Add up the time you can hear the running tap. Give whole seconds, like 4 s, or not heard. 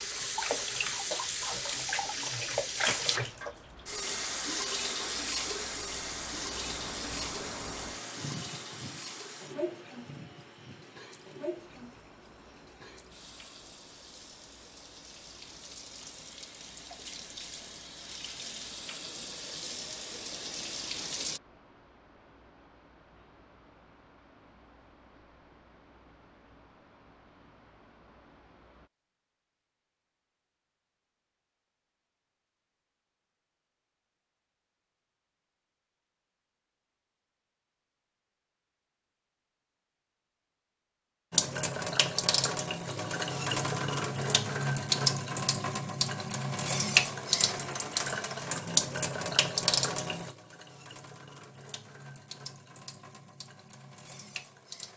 35 s.